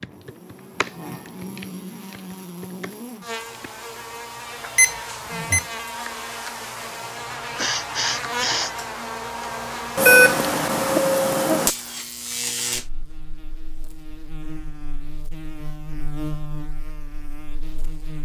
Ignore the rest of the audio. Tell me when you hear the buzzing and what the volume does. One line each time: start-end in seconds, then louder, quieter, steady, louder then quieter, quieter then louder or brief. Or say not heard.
0.0-18.2 louder then quieter.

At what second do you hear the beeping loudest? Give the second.
10 s.